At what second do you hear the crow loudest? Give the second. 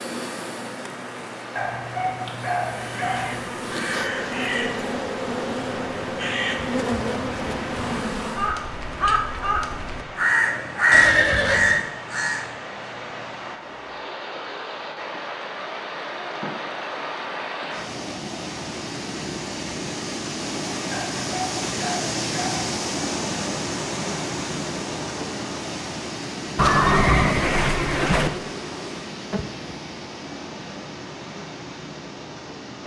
11 s.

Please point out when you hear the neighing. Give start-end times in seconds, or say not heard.
10.9-11.8, 26.6-28.3.